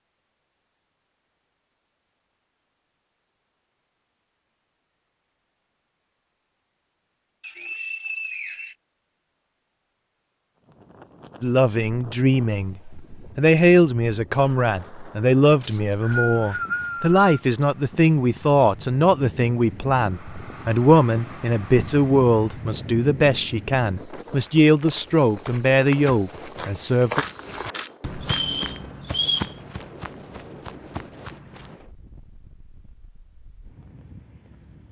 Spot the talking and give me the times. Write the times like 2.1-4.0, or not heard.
11.4-27.2.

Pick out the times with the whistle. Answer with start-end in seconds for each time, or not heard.
7.4-8.8, 15.6-17.2, 28.2-29.5.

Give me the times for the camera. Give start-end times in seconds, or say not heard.
27.1-28.4.